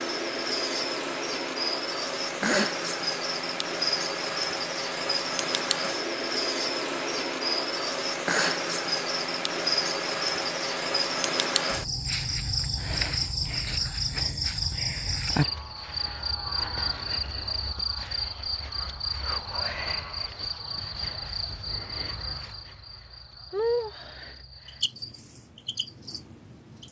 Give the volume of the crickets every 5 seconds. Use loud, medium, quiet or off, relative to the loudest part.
loud, loud, loud, loud, medium, quiet.